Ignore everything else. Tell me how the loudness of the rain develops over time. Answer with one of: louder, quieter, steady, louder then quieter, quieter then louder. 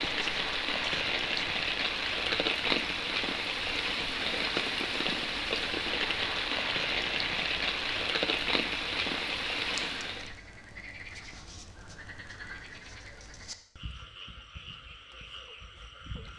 steady.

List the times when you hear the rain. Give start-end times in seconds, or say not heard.
0.0-10.3.